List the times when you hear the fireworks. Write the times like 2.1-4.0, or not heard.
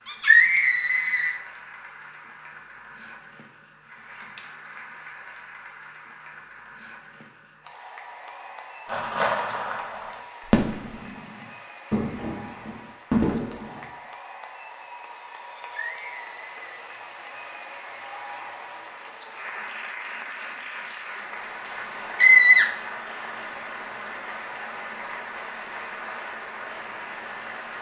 8.8-13.8.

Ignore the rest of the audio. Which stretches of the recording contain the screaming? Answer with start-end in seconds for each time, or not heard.
0.1-1.4, 15.6-16.9, 22.1-22.7.